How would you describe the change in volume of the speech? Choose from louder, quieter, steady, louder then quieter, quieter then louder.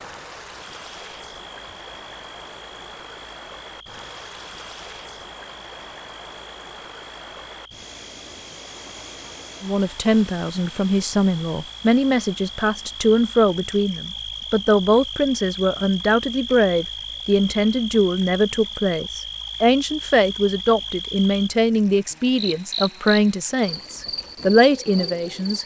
steady.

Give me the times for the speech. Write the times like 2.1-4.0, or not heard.
9.6-25.6.